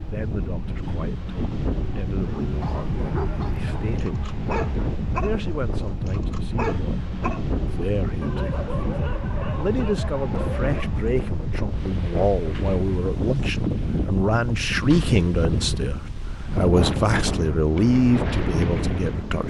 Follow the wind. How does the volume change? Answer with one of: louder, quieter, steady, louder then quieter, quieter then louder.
steady.